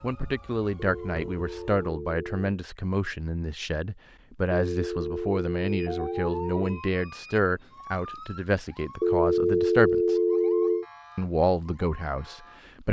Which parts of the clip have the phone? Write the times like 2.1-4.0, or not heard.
0.9-2.4, 4.5-6.8, 9.0-10.8.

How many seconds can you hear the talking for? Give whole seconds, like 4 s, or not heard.
12 s.